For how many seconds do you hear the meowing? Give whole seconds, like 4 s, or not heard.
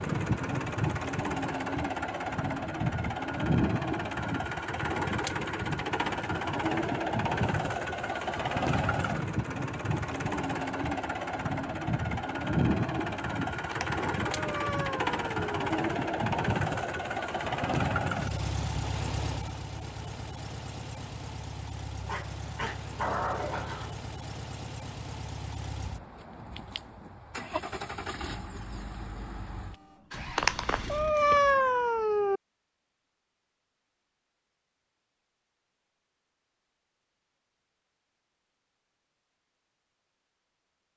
4 s.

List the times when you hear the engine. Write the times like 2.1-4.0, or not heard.
0.0-31.1.